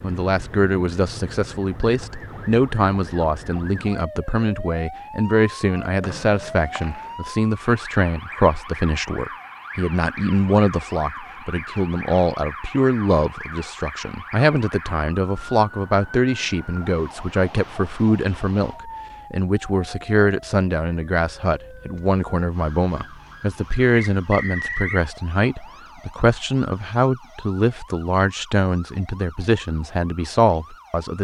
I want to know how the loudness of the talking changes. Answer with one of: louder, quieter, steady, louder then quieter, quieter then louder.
steady.